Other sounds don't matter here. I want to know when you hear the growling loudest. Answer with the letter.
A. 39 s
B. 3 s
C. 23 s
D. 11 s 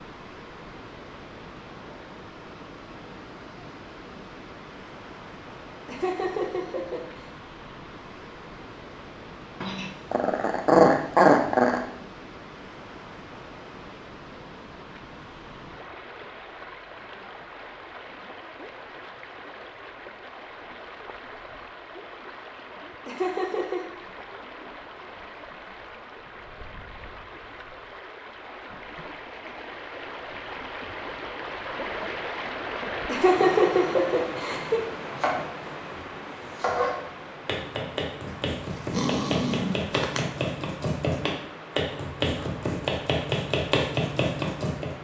D.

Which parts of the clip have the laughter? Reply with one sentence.
You can hear the laughter from 5.8 to 7.2 s, from 23.1 to 23.8 s and from 33.0 to 34.8 s.